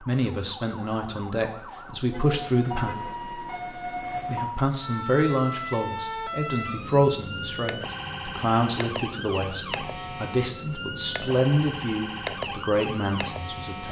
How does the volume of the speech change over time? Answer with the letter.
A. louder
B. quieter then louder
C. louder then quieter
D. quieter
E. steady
E.